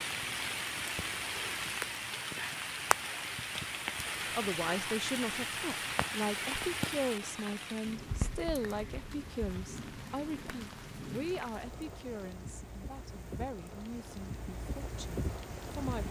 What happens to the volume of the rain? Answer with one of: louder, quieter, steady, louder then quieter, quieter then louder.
quieter.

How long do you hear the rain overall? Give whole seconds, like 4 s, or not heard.
16 s.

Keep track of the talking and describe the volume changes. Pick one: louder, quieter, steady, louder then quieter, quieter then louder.
quieter.